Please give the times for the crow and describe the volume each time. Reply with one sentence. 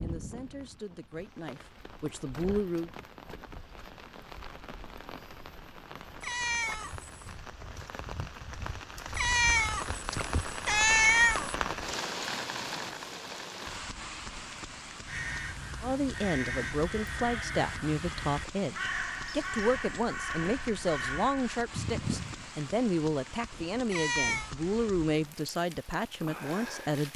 The crow can be heard from 15.1 to 22.4 s, at a steady volume.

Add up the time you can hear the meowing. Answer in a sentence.
You can hear the meowing for 4 seconds altogether.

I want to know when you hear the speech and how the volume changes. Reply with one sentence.
You can hear the speech briefly from 0.0 to 2.9 s; and from 15.8 to 27.1 s, at a steady volume.